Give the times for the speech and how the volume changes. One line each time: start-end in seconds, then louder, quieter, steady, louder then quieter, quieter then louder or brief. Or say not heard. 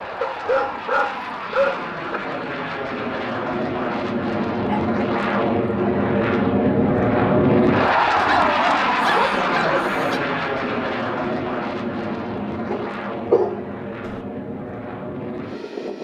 not heard.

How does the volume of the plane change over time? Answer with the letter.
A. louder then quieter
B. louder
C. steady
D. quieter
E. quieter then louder
A.